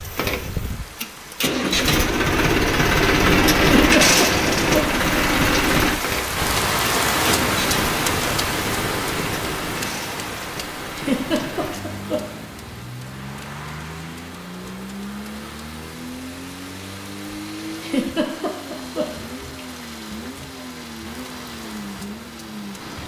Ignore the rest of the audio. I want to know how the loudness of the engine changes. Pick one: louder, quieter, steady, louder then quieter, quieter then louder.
quieter.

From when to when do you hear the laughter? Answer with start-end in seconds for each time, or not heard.
3.6-5.0, 10.9-12.4, 17.8-19.2.